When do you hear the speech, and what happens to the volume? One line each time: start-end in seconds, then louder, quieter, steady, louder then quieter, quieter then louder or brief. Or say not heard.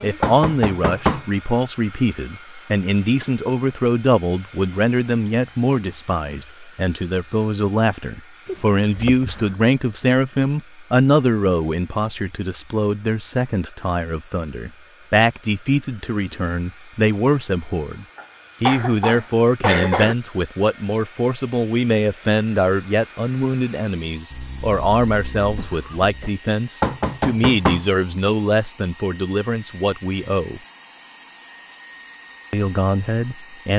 0.0-30.6 steady
32.5-33.7 brief.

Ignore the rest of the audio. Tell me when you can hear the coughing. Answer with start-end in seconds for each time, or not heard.
8.4-9.6, 18.1-20.1, 24.3-26.3.